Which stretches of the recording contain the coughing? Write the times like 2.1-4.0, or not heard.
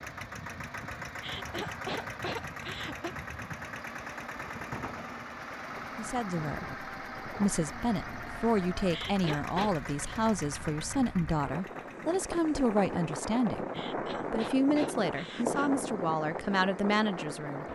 1.1-3.1, 8.8-9.8, 13.7-15.7.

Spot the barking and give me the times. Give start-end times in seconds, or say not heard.
not heard.